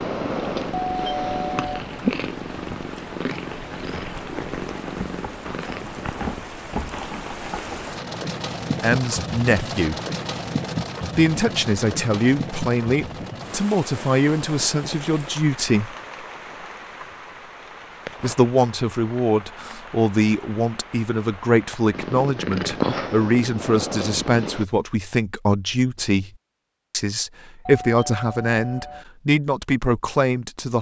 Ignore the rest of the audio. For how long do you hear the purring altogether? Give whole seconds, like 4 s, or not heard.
9 s.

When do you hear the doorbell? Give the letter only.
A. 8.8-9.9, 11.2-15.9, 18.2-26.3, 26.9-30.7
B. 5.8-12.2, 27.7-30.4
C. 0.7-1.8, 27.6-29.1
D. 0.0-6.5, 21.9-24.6
C.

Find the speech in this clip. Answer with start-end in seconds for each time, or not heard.
8.8-9.9, 11.2-15.9, 18.2-26.3, 26.9-30.7.